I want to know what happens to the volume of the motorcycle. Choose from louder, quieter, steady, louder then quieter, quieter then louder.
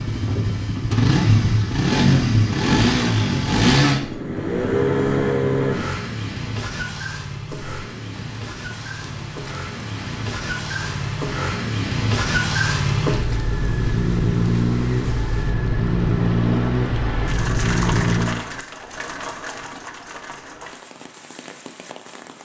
quieter then louder.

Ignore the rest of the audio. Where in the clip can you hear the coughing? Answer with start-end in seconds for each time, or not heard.
not heard.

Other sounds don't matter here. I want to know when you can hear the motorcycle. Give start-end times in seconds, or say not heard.
0.0-18.4.